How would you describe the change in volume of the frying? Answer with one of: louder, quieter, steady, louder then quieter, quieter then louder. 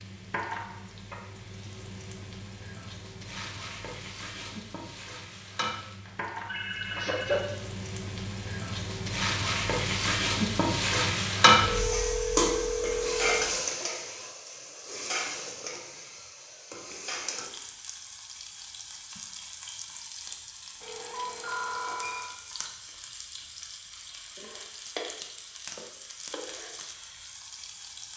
louder then quieter.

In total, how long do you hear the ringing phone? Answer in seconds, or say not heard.
5 s.